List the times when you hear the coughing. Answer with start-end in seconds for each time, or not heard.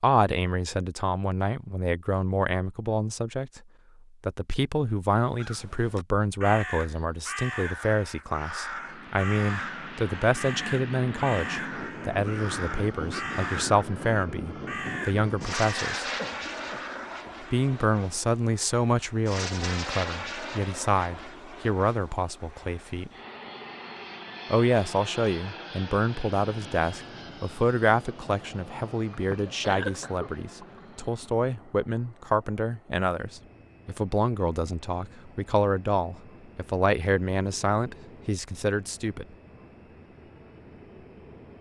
16.1-17.4, 29.1-31.0.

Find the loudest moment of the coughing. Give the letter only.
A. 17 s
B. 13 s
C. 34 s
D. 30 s
D.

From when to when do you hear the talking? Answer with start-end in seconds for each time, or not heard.
0.0-3.6, 4.2-16.1, 17.4-23.1, 24.5-39.2.